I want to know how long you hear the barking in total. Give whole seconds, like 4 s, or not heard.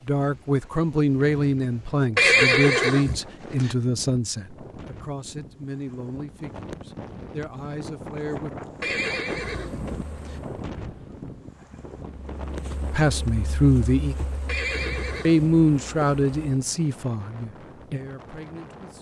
not heard.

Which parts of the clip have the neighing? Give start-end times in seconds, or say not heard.
2.1-3.8, 8.8-10.4, 14.4-15.5.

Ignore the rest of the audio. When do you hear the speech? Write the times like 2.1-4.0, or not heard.
0.1-8.6, 12.9-14.2, 15.2-18.9.